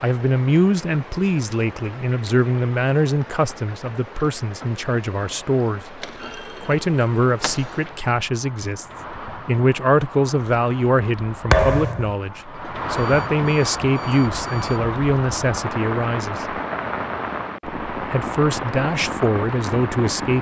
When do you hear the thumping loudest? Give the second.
12 s.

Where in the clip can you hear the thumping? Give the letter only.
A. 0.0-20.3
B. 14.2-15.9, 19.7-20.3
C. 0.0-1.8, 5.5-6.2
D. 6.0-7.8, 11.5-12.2
D.